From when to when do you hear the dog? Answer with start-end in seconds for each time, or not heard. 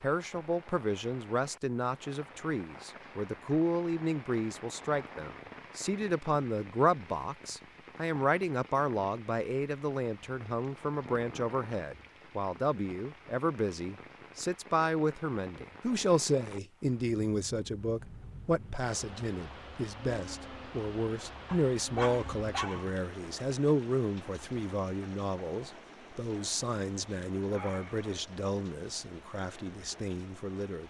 21.4-23.1.